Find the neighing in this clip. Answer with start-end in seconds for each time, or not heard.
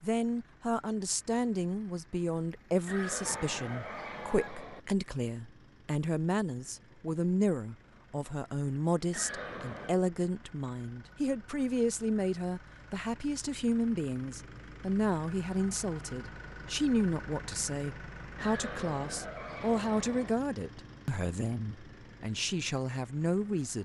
2.9-4.8, 9.1-9.9, 18.4-20.4.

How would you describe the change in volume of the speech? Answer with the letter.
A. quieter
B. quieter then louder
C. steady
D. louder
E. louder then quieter
C.